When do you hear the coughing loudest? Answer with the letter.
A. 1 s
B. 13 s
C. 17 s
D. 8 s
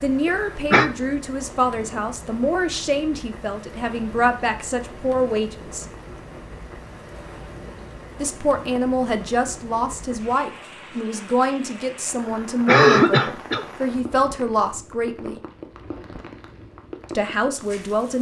B.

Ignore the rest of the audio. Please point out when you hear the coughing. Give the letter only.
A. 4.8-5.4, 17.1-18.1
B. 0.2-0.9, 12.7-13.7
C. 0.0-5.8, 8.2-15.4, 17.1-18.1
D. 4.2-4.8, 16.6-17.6
B.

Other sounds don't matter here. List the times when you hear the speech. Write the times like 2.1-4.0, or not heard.
0.0-5.8, 8.2-15.4, 17.1-18.1.